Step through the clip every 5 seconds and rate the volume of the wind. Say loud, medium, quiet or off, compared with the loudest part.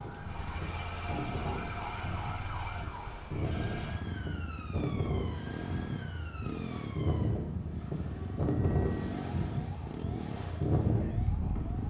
medium, loud, loud.